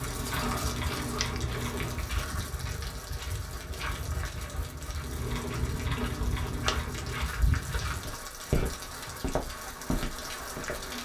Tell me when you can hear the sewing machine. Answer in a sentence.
You can hear the sewing machine from 0.0 to 2.5 s and from 5.0 to 7.3 s.